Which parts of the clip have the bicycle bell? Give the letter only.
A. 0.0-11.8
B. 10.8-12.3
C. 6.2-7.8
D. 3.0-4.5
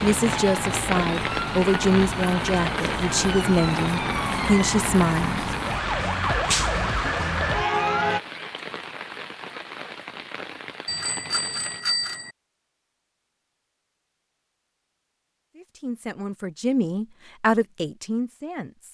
B.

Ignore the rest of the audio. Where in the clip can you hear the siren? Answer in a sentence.
You can hear the siren from 0.0 to 8.2 s.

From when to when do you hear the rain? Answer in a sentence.
The rain can be heard from 0.0 to 11.8 s.